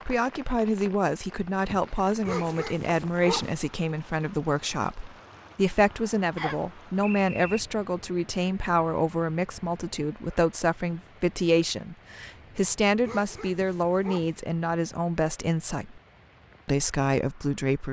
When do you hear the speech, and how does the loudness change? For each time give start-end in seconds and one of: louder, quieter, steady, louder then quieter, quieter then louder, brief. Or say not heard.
0.1-16.0 steady
16.6-17.8 brief.